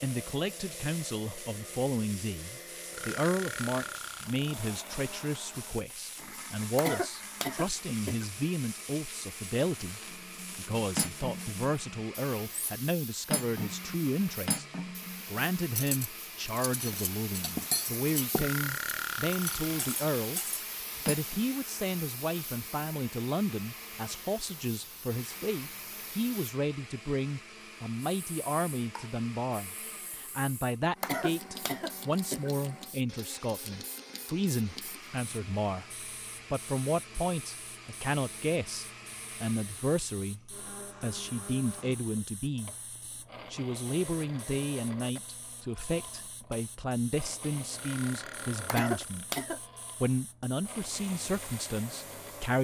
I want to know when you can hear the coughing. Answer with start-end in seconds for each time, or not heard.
6.8-8.2, 31.0-32.5, 48.6-49.6.